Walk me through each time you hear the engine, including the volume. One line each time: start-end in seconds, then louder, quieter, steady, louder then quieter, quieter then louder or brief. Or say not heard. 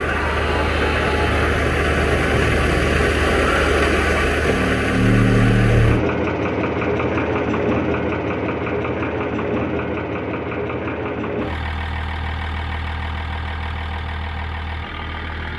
0.0-15.5 quieter.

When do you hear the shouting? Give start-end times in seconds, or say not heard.
0.1-1.6.